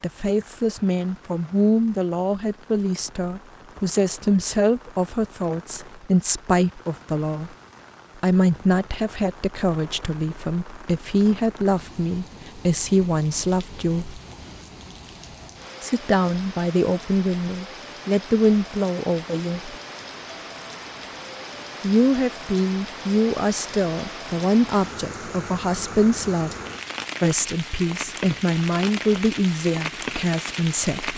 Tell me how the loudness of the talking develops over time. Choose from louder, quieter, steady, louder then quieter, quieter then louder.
steady.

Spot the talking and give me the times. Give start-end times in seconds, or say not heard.
0.0-7.5, 8.2-14.2, 15.8-19.8, 21.8-26.5, 27.2-31.1.